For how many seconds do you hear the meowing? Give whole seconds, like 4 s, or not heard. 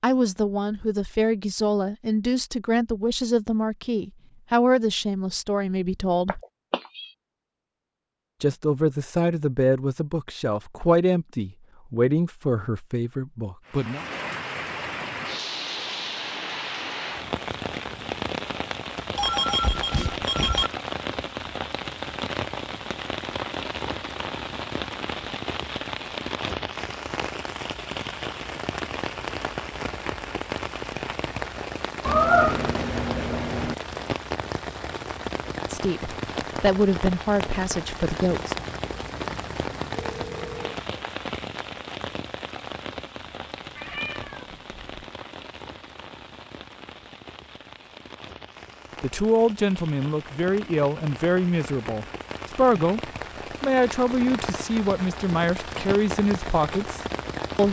4 s.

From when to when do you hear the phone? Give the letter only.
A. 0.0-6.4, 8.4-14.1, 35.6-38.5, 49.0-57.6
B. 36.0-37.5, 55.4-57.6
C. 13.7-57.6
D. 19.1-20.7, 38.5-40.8
D.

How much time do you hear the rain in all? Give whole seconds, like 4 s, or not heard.
44 s.